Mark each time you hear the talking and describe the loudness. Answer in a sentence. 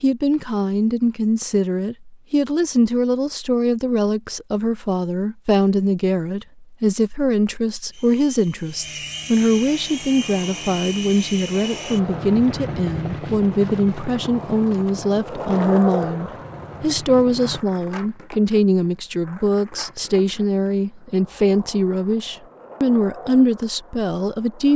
The talking can be heard from 0.0 to 24.7 s, at a steady volume.